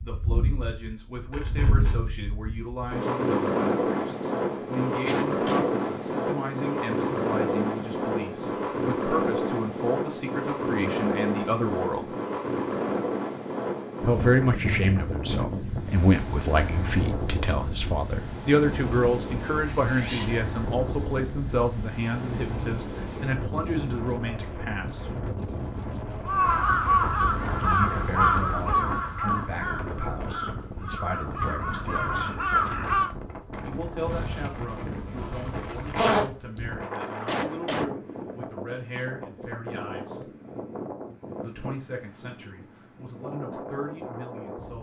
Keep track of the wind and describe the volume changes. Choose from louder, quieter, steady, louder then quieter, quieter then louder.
quieter.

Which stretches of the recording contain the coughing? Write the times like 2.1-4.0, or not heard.
4.8-5.7, 37.0-37.9.